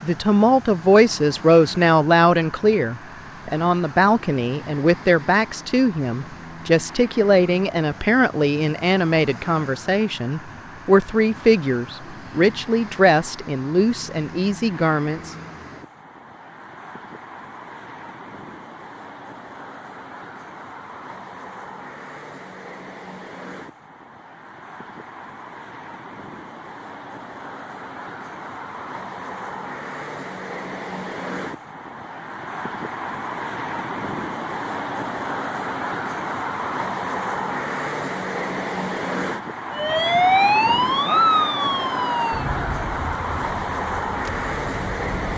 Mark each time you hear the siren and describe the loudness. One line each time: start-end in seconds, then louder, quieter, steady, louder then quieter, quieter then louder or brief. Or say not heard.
39.7-45.3 quieter.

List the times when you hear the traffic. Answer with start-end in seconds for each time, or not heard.
0.0-45.3.